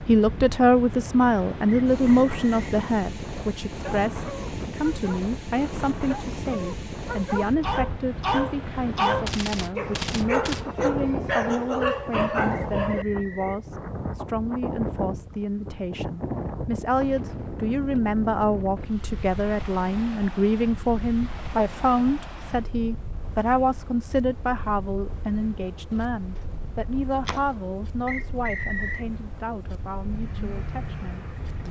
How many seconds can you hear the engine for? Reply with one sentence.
You can hear the engine for 2 seconds altogether.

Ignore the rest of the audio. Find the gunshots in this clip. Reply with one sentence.
You can hear the gunshots from 9.2 to 10.7 s, from 25.9 to 26.5 s and from 27.1 to 27.6 s.